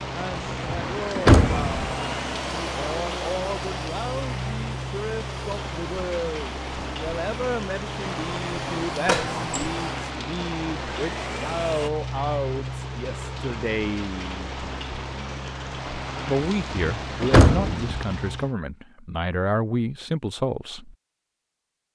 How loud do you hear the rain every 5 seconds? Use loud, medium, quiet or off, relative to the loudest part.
loud, loud, loud, loud, off.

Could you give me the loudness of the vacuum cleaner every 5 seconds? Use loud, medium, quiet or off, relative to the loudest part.
loud, loud, loud, off, off.